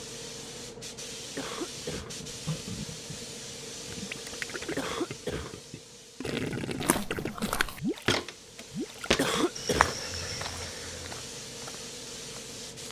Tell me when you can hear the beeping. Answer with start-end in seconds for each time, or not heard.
not heard.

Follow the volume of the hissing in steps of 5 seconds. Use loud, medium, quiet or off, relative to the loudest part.
loud, medium, loud.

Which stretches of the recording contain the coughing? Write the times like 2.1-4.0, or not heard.
1.4-2.1, 4.8-5.5, 9.2-9.9.